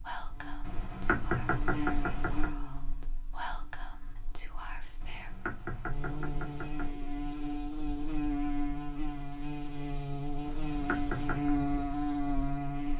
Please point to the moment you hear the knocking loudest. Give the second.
1 s.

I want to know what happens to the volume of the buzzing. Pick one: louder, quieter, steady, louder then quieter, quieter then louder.
quieter then louder.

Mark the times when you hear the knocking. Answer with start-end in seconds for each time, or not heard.
0.7-2.5, 5.0-7.0, 10.4-11.5.